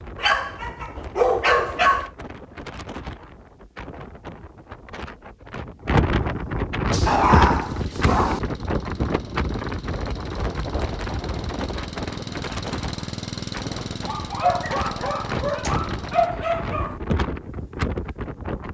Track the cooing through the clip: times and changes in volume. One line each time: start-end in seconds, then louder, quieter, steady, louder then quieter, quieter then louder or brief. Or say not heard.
not heard.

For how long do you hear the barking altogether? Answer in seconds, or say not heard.
6 s.